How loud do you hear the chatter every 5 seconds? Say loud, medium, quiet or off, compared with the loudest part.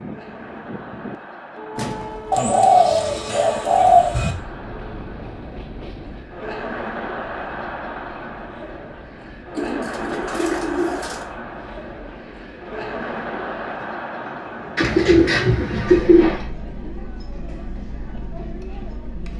medium, loud, loud, medium.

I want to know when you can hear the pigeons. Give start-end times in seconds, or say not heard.
2.3-4.3, 9.6-11.2, 14.8-16.4.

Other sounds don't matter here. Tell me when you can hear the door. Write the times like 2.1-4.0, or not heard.
1.8-2.5.